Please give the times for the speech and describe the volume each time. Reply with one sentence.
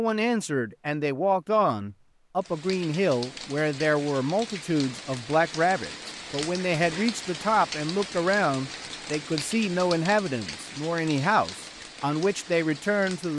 You can hear the speech from 0.0 to 13.3 s, at a steady volume.